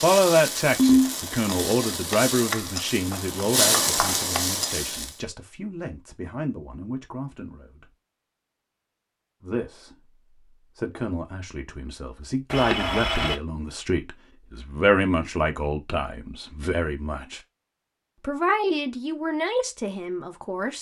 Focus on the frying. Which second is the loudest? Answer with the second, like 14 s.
4 s.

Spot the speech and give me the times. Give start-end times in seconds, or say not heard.
0.0-7.8, 9.4-9.9, 10.8-17.4, 18.2-20.7.